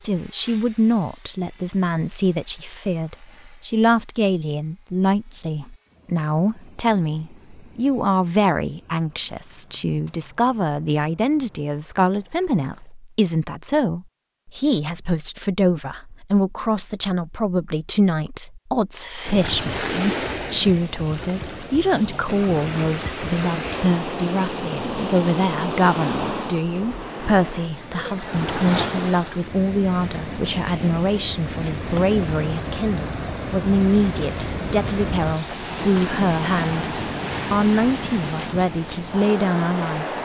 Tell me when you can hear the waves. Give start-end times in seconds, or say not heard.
19.2-40.2.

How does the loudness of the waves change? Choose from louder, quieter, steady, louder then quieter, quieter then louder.
steady.